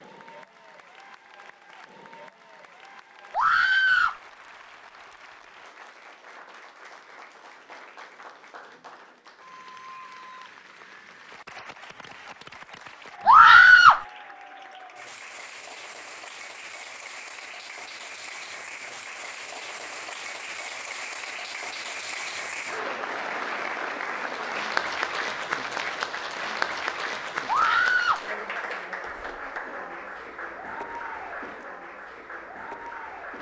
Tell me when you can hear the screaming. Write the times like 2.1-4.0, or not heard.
3.3-4.2, 13.2-14.0, 27.4-28.2.